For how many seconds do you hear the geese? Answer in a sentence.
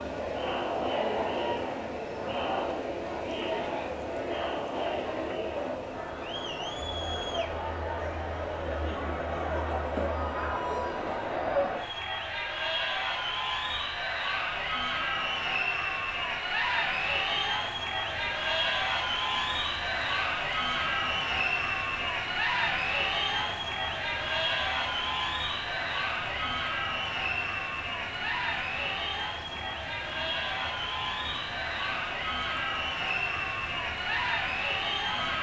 You can't hear the geese here.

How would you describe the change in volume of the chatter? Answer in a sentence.
The volume of the chatter stays about the same.